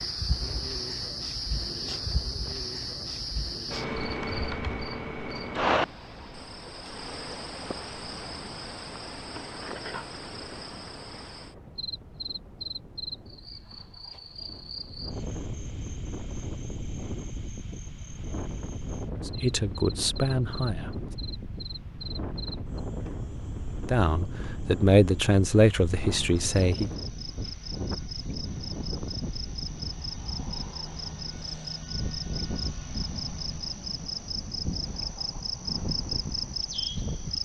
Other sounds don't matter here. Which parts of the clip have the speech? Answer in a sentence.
You can hear the speech from 19.2 to 20.9 s and from 23.9 to 26.9 s.